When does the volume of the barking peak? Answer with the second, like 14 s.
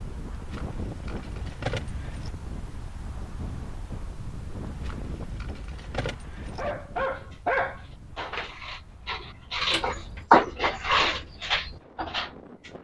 10 s.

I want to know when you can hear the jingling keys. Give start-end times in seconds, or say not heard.
0.3-2.4, 4.7-6.7, 9.6-10.2.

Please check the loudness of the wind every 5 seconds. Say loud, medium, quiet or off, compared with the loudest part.
loud, medium, medium.